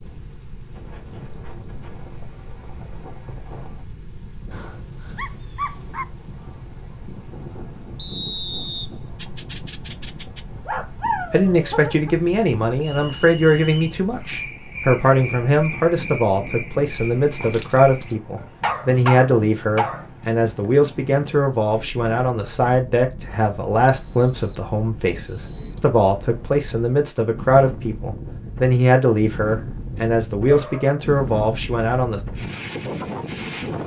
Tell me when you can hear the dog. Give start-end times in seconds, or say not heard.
4.5-6.0, 9.2-12.2, 18.4-20.1, 30.4-31.0.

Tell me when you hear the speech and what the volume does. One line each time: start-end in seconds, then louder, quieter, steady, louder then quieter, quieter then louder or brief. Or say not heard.
11.3-32.2 steady.